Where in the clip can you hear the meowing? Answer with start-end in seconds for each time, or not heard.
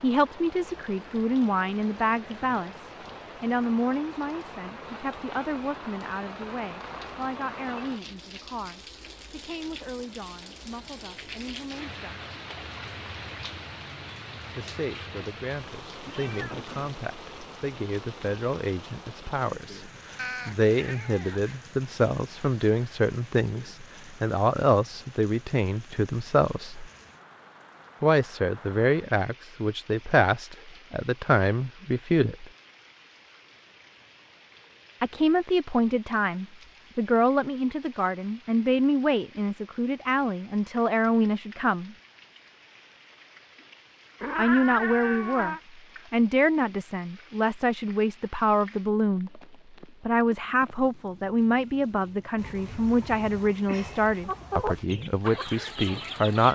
16.0-16.9, 20.1-21.6, 44.2-45.6.